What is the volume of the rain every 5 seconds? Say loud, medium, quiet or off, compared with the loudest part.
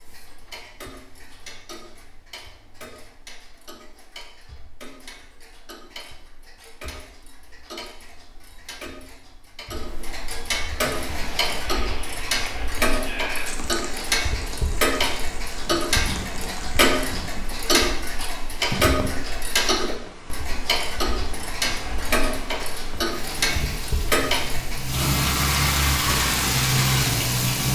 off, off, quiet, quiet, quiet, loud.